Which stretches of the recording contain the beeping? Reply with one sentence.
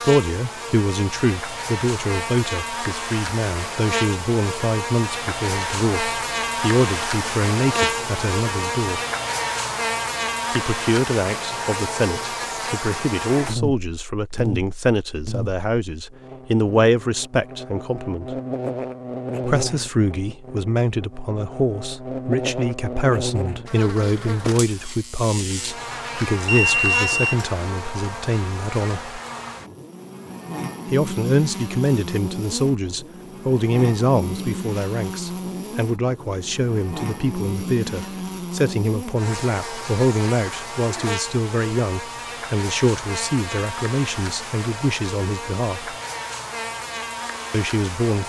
You can hear the beeping from 26.4 to 27.4 s.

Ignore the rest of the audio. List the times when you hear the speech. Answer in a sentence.
The speech can be heard from 0.0 to 9.0 s, from 10.5 to 18.4 s, from 19.4 to 29.2 s, from 30.9 to 46.0 s and from 47.5 to 48.2 s.